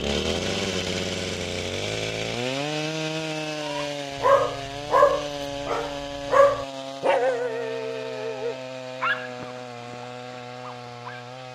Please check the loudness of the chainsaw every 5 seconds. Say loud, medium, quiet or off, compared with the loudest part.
loud, medium, medium.